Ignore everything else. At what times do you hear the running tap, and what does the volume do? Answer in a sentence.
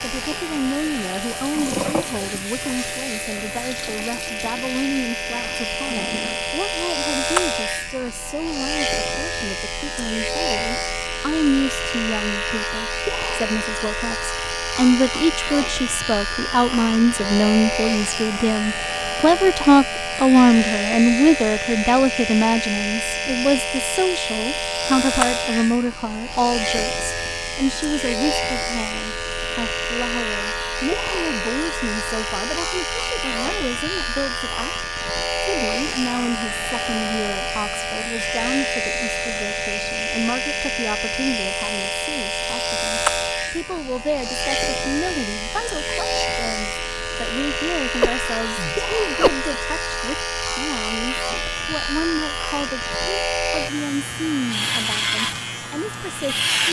The running tap can be heard from 0.1 to 6.7 s, getting louder then quieter.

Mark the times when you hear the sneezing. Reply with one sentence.
You can hear the sneezing from 48.0 to 49.5 s.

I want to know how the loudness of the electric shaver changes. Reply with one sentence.
The loudness of the electric shaver stays about the same.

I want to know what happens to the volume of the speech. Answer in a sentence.
The volume of the speech goes up, then down.